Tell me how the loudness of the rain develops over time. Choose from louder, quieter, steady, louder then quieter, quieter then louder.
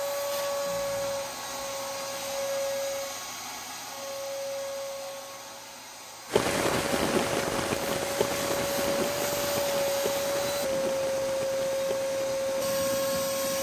quieter.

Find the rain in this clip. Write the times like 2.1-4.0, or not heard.
6.3-13.5.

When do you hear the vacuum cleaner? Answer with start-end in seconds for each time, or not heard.
0.0-13.5.